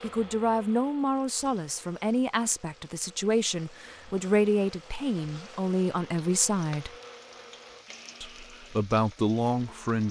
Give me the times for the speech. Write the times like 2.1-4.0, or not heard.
0.0-6.9, 8.2-10.0.